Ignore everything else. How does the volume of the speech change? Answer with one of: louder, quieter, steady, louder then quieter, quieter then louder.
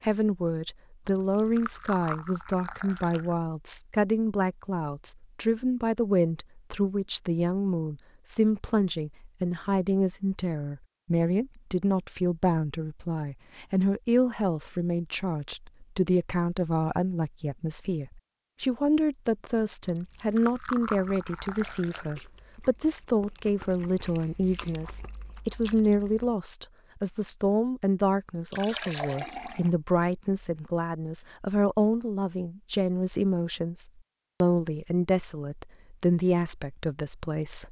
steady.